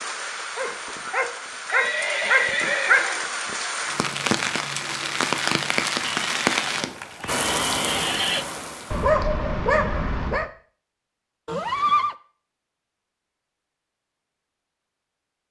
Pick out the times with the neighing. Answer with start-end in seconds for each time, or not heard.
1.6-3.2, 6.2-8.4, 11.4-12.2.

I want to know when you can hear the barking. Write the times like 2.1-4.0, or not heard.
0.6-3.0, 8.9-10.5.